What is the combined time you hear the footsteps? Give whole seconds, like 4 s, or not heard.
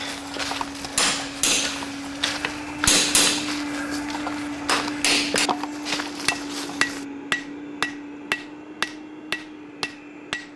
7 s.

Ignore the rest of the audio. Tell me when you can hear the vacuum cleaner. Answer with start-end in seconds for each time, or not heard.
0.0-10.5.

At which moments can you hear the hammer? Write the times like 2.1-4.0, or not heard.
0.0-10.5.